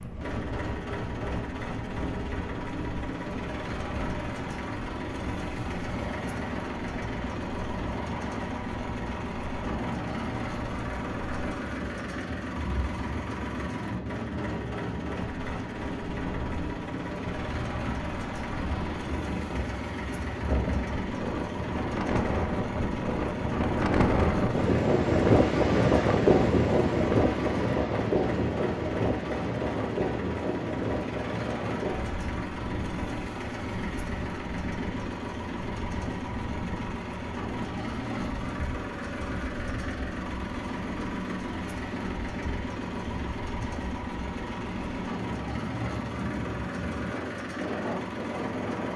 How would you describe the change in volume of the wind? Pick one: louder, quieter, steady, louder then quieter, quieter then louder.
louder then quieter.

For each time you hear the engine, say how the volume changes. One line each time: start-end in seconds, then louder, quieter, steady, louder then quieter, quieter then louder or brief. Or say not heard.
0.0-48.9 steady.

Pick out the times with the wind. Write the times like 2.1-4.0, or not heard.
0.0-48.9.